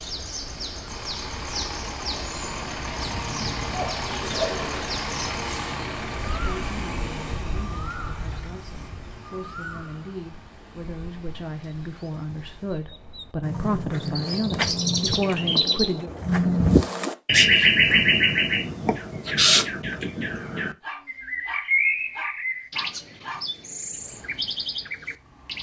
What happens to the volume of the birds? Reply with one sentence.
The loudness of the birds goes up, then down.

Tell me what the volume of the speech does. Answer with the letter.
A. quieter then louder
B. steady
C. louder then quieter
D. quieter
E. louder
E.